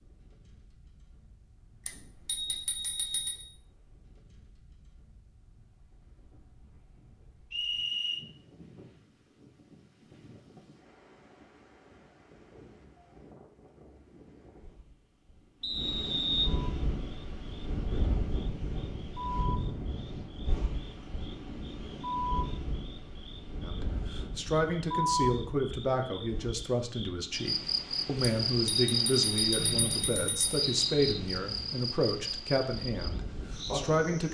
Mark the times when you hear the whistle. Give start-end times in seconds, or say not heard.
7.5-8.2, 15.6-16.5, 29.6-31.2.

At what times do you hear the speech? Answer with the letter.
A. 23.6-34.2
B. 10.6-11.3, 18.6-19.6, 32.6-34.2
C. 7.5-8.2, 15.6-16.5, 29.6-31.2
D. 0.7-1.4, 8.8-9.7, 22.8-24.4
A.